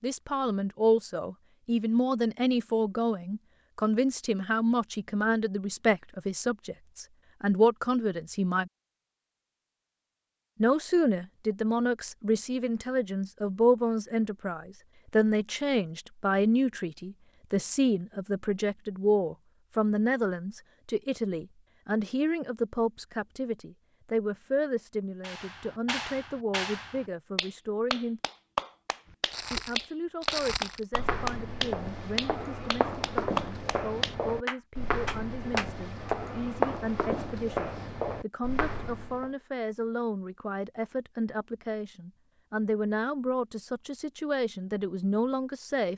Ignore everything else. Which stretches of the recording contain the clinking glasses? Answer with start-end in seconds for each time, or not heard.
not heard.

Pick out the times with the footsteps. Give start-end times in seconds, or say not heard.
29.1-39.3.